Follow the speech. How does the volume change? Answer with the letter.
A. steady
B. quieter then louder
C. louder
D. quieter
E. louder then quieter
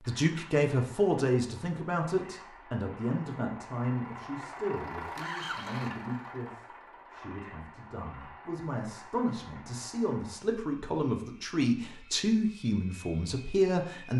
B.